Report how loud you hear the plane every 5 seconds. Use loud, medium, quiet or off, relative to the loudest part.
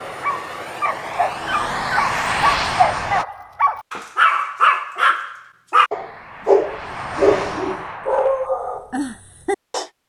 loud, medium.